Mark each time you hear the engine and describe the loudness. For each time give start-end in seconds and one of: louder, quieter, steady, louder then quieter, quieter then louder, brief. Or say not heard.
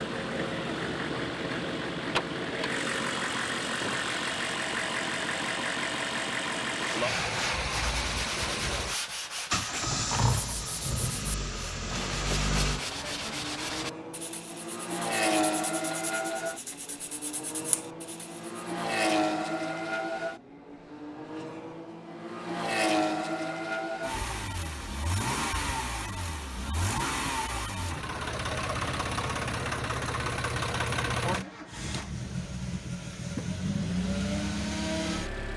0.0-35.5 steady.